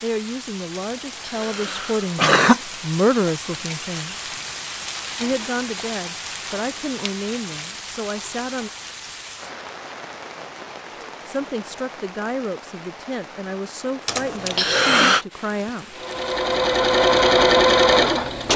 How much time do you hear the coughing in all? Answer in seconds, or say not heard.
3 s.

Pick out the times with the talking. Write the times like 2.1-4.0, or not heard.
0.0-4.3, 5.2-8.7, 11.2-16.0.